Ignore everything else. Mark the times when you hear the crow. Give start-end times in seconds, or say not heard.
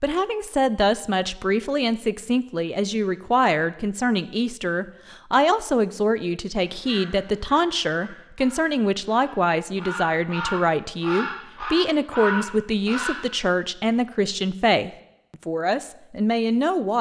6.7-13.2.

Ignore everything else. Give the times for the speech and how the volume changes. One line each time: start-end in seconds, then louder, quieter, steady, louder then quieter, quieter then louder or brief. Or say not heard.
0.0-16.9 steady.